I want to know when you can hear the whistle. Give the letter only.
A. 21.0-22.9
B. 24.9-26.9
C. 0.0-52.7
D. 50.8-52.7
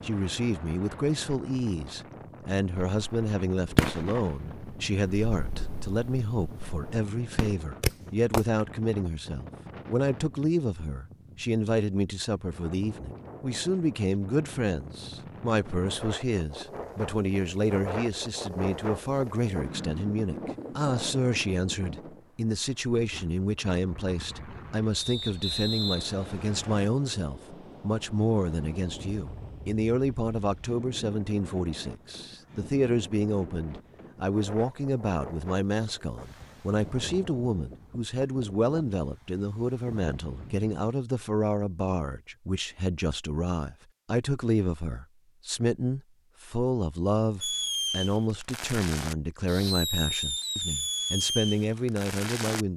B.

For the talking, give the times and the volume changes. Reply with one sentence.
The talking can be heard from 0.0 to 52.7 s, at a steady volume.